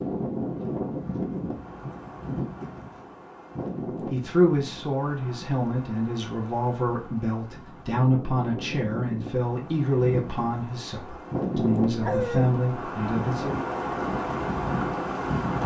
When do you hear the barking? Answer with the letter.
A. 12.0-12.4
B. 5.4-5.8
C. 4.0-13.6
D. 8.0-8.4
A.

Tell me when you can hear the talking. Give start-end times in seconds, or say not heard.
4.0-13.6.